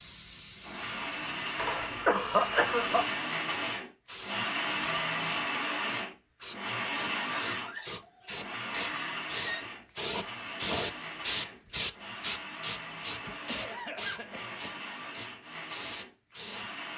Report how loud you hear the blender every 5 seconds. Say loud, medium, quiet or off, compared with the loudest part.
loud, loud, medium, medium.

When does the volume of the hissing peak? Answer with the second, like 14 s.
11 s.